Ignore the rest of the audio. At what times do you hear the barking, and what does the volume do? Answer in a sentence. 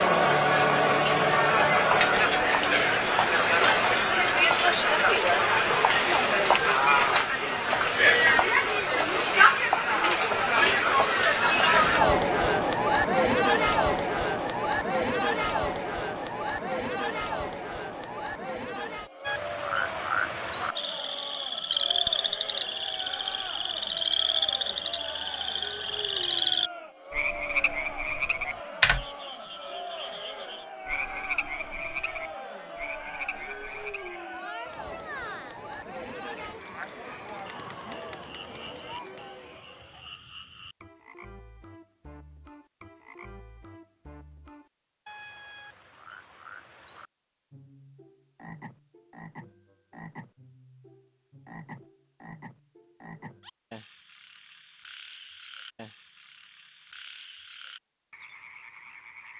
The barking can't be heard in this clip.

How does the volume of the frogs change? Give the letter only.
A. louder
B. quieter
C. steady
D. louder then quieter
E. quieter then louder
B.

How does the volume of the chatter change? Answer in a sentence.
The volume of the chatter goes down.